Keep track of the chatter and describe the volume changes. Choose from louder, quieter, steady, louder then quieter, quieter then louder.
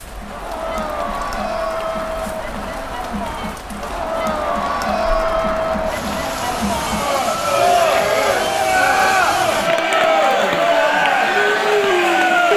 louder.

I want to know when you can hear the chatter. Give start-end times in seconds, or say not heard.
0.0-12.5.